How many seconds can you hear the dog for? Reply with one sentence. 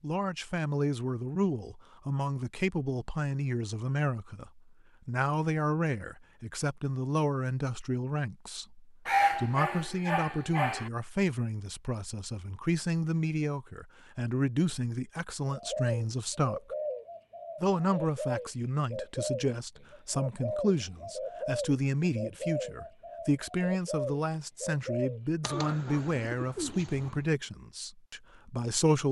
The dog can be heard for 2 seconds in total.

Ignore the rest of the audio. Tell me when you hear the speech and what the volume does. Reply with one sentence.
You can hear the speech from 0.0 to 16.8 s, at a steady volume; and from 17.6 to 29.0 s, at a steady volume.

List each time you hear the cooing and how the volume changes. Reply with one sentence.
You can hear the cooing from 15.4 to 27.3 s, at a steady volume.